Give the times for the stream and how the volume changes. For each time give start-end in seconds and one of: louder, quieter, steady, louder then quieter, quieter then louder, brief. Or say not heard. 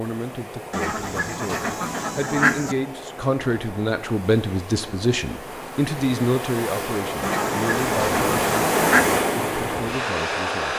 0.0-10.7 louder.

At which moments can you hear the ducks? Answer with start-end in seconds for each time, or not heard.
0.7-2.8, 7.2-9.2.